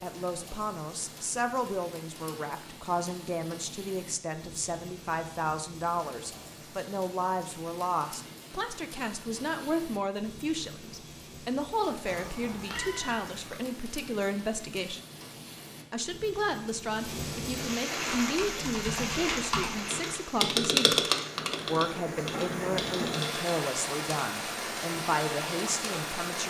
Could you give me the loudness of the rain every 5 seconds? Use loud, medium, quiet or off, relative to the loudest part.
quiet, quiet, quiet, loud, loud, loud.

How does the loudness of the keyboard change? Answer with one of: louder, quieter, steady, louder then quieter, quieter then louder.
louder then quieter.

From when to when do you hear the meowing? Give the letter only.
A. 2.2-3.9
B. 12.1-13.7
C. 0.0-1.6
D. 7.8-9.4
B.